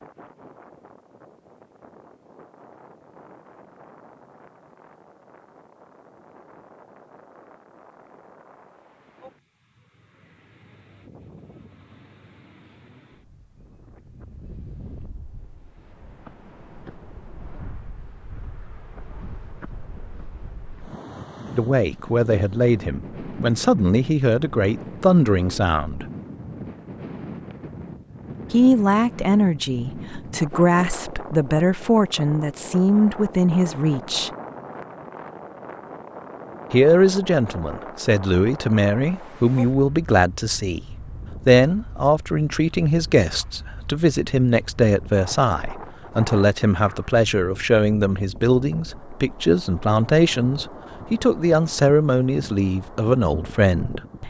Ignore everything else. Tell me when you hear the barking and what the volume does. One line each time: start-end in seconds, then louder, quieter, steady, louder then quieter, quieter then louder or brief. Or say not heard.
not heard.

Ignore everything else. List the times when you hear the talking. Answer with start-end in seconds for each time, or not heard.
21.6-26.1, 28.5-34.3, 36.7-40.9, 41.5-54.2.